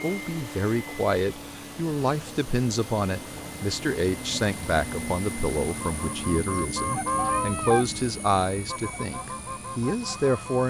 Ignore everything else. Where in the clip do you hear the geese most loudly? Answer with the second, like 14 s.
7 s.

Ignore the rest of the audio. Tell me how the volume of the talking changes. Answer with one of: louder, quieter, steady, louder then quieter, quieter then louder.
steady.